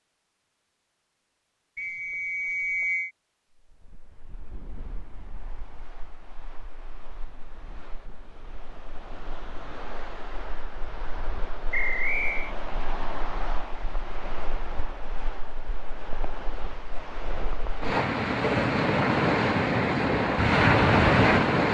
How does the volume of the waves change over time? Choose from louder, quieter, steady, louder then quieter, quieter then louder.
louder.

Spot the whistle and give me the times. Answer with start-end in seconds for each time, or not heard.
1.8-3.1, 11.7-12.6.